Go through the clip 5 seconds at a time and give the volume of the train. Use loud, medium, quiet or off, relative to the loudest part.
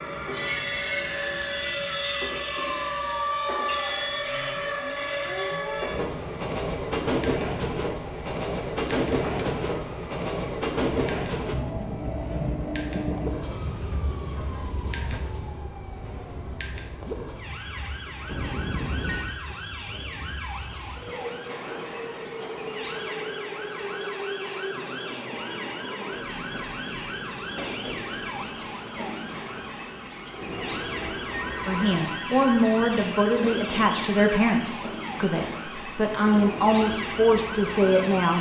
loud, loud, loud, quiet, medium, medium, medium, medium.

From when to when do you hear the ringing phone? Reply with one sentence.
You can hear the ringing phone from 8.4 to 9.7 s, from 18.2 to 19.4 s and from 31.3 to 33.0 s.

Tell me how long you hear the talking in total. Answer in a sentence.
The talking can be heard for 7 seconds in total.